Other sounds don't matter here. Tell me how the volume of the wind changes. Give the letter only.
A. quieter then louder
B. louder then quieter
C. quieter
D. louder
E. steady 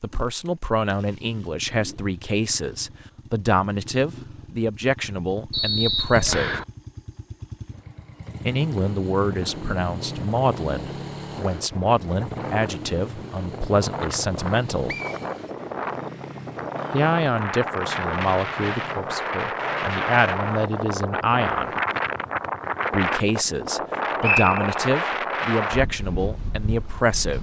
D.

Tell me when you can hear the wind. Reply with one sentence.
You can hear the wind from 9.2 to 27.3 s.